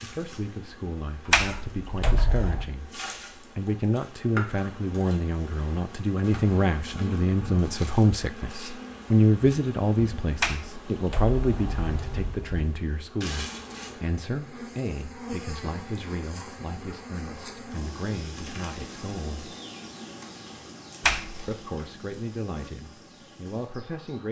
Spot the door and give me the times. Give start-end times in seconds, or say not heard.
1.3-2.7, 10.4-12.7, 21.0-21.4.